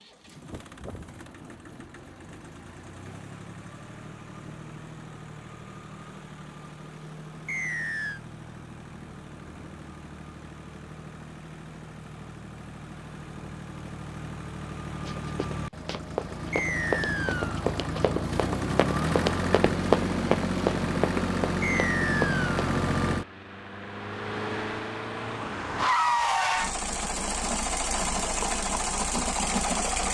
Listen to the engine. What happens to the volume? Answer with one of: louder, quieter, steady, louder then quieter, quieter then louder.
louder.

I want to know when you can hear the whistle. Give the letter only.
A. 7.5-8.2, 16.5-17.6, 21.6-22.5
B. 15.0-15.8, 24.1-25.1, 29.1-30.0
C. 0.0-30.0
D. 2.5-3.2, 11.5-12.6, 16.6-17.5
A.